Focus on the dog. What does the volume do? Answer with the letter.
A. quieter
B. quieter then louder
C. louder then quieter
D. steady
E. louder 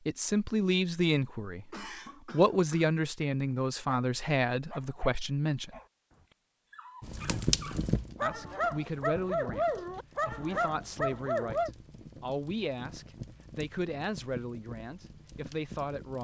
E.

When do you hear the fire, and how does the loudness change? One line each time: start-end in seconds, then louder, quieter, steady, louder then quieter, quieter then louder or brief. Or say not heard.
7.0-16.2 quieter.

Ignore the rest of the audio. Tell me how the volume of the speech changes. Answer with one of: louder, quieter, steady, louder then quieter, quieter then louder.
quieter.